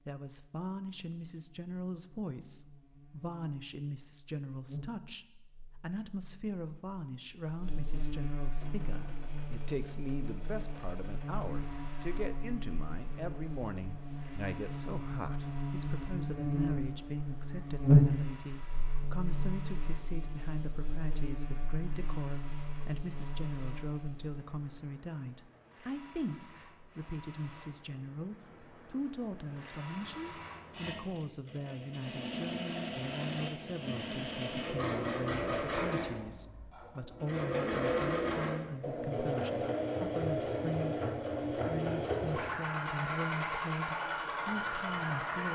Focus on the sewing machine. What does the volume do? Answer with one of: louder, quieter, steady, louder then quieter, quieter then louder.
louder.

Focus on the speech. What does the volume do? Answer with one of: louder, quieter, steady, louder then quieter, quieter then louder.
steady.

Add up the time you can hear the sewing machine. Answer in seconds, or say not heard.
37 s.